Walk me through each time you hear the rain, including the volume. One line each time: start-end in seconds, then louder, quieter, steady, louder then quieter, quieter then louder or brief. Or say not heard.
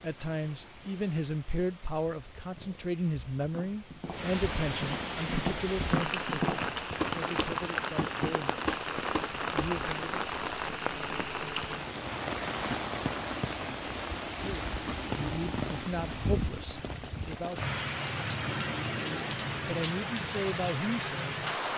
0.0-21.7 louder.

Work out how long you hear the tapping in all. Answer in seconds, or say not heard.
6 s.